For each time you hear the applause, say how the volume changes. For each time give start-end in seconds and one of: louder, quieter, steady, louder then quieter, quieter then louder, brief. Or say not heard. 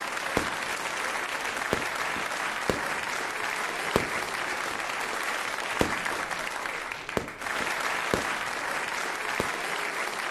0.0-10.2 steady.